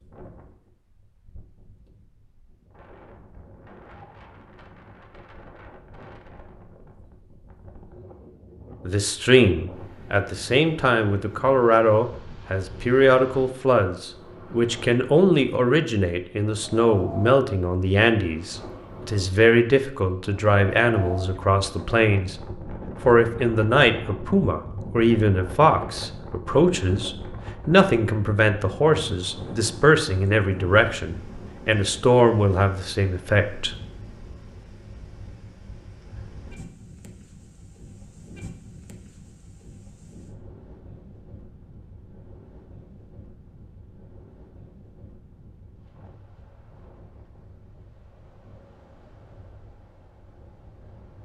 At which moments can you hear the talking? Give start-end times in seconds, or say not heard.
8.8-22.4, 23.1-33.7.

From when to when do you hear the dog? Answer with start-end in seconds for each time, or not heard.
not heard.